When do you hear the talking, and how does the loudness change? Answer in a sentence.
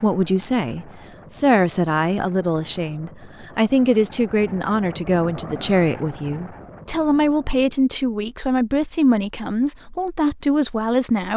You can hear the talking from 0.0 to 11.3 s, at a steady volume.